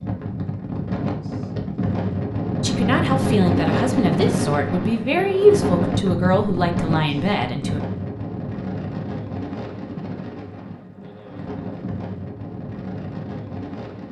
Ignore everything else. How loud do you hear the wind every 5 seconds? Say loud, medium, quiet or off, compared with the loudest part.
loud, loud, medium.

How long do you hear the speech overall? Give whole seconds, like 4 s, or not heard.
5 s.